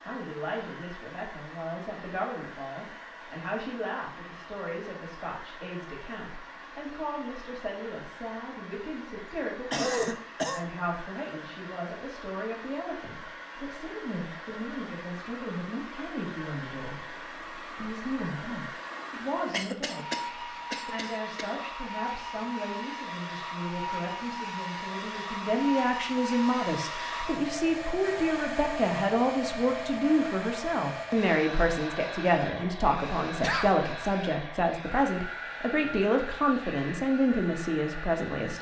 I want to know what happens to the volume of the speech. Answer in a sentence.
The volume of the speech goes up.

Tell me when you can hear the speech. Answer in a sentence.
You can hear the speech from 0.0 to 38.5 s.